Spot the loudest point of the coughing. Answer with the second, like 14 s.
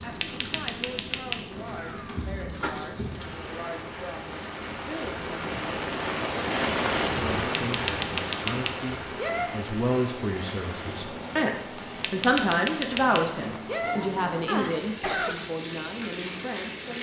15 s.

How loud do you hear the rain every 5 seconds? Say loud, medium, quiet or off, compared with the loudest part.
medium, loud, medium, medium.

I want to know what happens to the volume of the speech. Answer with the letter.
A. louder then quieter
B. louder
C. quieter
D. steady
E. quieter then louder
A.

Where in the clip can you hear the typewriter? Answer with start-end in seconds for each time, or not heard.
0.1-1.6, 7.5-9.5, 11.9-14.0.